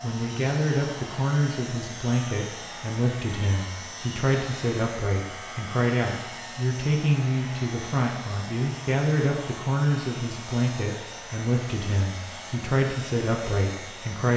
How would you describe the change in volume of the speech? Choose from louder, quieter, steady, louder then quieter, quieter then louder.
steady.